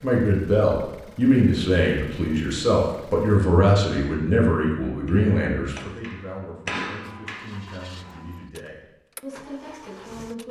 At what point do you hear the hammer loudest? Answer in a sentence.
The loudest moment of the hammer is at 7 seconds.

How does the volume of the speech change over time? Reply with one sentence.
The loudness of the speech goes down.